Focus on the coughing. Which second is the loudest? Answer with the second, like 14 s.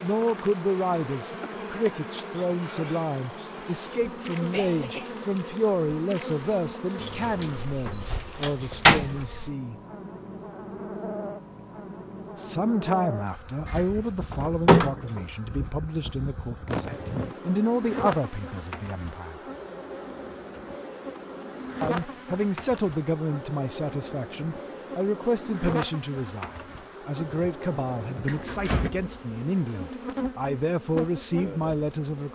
17 s.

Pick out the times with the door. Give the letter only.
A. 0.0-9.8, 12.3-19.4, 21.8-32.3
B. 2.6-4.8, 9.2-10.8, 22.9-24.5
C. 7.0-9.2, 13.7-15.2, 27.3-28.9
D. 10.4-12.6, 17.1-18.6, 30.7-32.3
C.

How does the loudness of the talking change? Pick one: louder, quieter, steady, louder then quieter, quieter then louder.
steady.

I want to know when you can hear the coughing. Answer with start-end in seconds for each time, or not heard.
3.7-5.2, 16.6-17.4, 28.2-28.9.